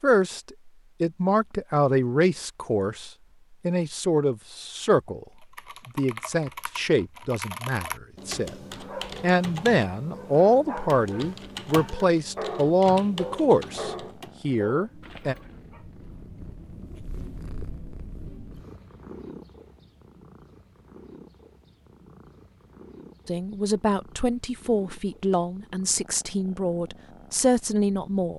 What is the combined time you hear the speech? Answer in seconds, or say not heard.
19 s.